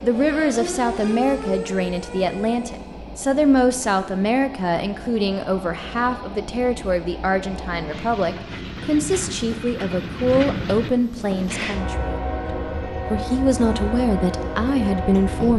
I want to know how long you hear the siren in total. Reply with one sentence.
You can hear the siren for 3 seconds altogether.